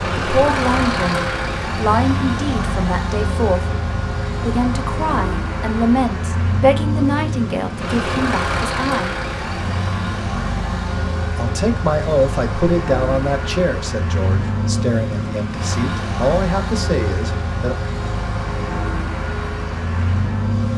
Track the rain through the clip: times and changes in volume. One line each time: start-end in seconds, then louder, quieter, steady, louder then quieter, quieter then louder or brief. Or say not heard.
not heard.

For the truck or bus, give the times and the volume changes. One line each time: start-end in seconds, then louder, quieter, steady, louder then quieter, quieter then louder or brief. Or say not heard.
0.0-20.7 steady.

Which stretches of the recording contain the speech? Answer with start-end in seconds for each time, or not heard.
0.2-3.6, 4.4-9.2, 11.3-17.8.